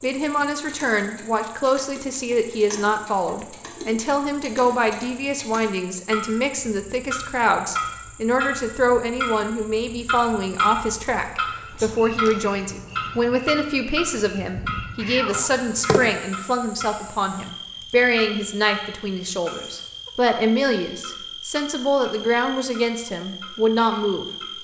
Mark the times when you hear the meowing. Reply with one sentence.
The meowing can be heard from 15.0 to 16.2 s.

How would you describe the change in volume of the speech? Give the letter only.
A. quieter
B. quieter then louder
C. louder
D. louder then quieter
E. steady
E.